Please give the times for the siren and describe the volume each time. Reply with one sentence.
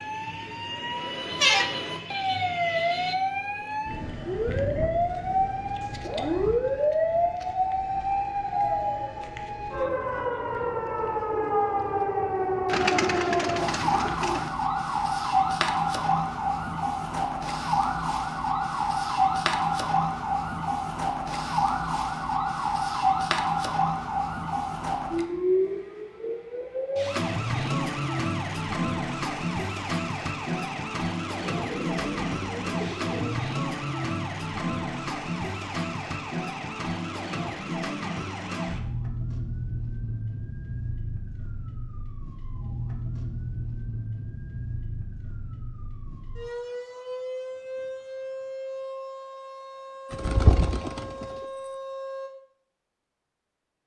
The siren can be heard from 0.0 to 52.3 s, getting quieter.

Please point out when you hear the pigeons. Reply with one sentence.
You can hear the pigeons from 12.7 to 14.5 s, from 31.4 to 33.5 s and from 50.1 to 51.2 s.